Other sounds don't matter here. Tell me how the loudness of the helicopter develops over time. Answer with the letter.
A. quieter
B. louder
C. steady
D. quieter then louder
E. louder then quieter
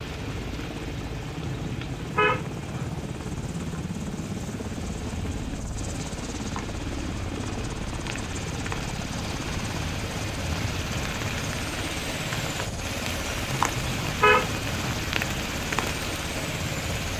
C.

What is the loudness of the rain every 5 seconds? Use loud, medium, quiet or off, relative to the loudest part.
quiet, medium, loud, loud.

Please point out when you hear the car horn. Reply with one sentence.
The car horn can be heard from 1.6 to 2.9 s and from 13.5 to 14.9 s.